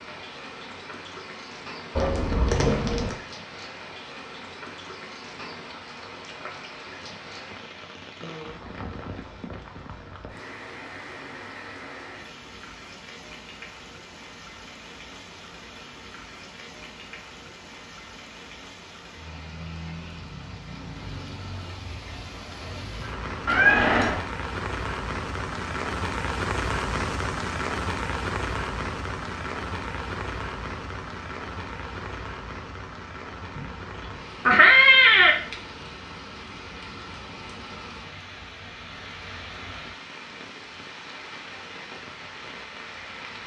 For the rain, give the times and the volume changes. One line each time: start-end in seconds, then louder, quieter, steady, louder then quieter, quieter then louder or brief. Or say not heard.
0.0-43.4 louder then quieter.